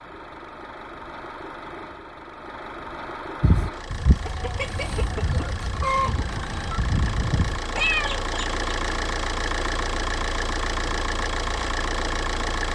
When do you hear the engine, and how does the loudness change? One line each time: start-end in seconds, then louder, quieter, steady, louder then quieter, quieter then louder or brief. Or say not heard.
0.0-12.7 louder.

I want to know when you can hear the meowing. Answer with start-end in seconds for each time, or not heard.
7.8-8.2.